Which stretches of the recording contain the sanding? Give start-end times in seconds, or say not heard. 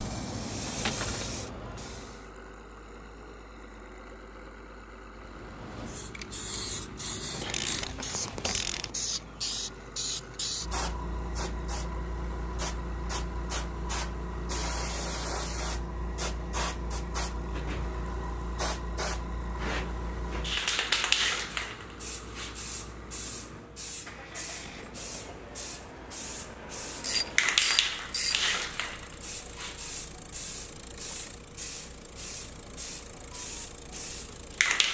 not heard.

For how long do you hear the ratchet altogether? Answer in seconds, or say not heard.
3 s.